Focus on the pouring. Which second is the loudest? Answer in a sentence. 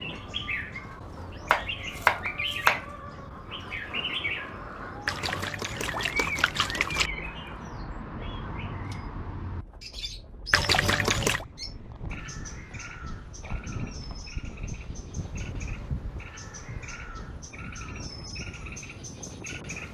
The volume of the pouring peaks at 11 seconds.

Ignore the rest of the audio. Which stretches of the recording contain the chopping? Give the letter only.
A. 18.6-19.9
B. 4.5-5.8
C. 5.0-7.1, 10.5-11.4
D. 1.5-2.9
D.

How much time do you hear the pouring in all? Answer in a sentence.
The pouring can be heard for 3 seconds in total.